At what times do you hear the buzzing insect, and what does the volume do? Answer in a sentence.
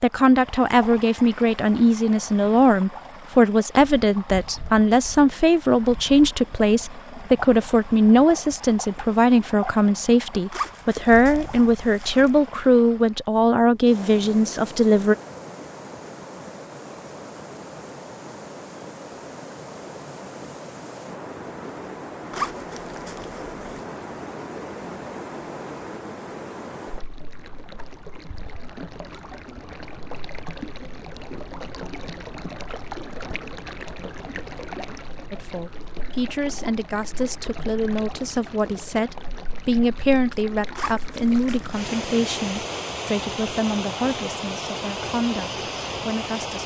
The buzzing insect can't be heard in this clip.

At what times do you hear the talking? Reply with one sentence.
You can hear the talking from 0.0 to 15.2 s and from 35.3 to 46.6 s.